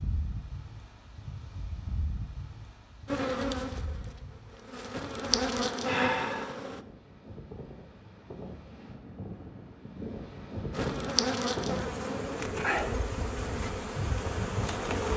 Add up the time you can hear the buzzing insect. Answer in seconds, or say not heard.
8 s.